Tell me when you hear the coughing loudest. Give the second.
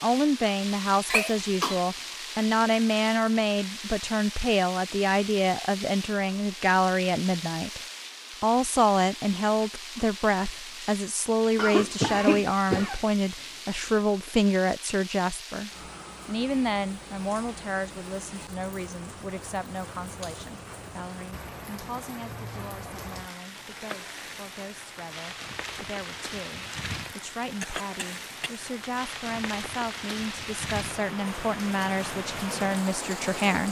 12 s.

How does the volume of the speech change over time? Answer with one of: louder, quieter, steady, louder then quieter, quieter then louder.
quieter then louder.